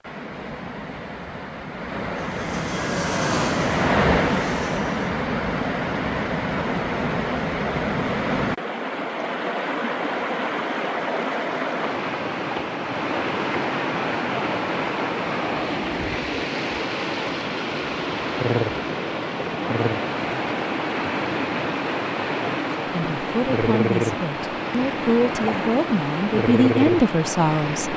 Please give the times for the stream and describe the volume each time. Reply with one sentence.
You can hear the stream from 0.0 to 27.9 s, at a steady volume.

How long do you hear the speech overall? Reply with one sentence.
The speech can be heard for 5 seconds in total.